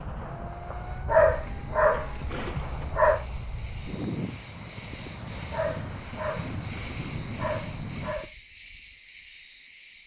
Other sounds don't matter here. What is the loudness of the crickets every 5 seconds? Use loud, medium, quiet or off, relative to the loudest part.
medium, loud.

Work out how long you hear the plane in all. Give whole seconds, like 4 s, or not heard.
8 s.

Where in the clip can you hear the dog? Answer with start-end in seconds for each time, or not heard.
1.1-3.2, 5.5-8.3.